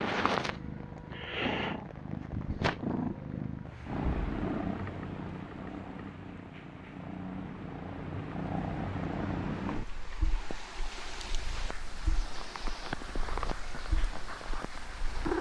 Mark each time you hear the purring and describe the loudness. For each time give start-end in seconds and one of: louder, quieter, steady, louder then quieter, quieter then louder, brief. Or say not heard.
0.0-15.3 quieter.